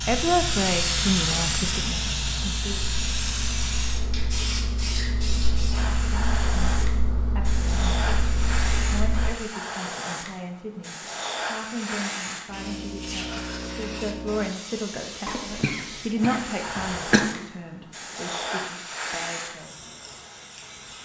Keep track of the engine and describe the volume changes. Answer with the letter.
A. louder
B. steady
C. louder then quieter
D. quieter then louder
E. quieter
A.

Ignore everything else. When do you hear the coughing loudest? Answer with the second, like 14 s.
17 s.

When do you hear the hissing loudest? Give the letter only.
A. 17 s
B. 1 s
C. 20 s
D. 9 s
B.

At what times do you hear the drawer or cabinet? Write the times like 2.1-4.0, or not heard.
not heard.